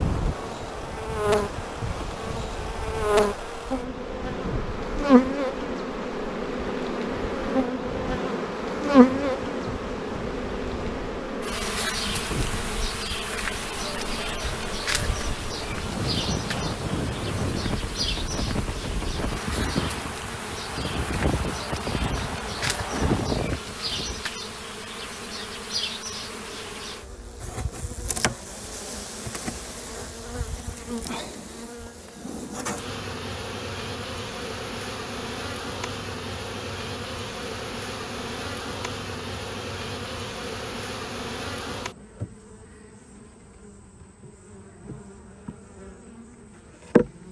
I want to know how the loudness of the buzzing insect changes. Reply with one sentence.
The volume of the buzzing insect goes down.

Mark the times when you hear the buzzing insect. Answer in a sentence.
The buzzing insect can be heard from 0.0 to 47.2 s.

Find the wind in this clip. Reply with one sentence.
The wind can be heard from 0.0 to 24.2 s.